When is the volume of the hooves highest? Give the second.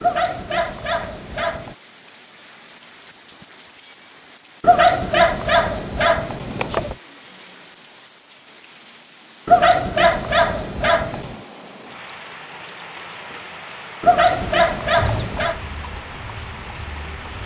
15 s.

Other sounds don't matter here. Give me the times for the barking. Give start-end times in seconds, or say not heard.
0.0-1.8, 4.6-7.0, 9.4-11.3, 14.0-15.6.